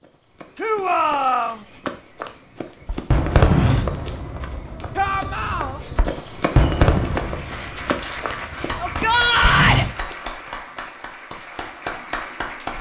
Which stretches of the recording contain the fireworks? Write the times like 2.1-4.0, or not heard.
2.9-9.9.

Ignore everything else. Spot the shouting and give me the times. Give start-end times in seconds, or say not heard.
0.6-1.6, 5.0-5.8, 8.8-9.8.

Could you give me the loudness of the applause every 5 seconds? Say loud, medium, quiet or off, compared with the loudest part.
off, loud, loud.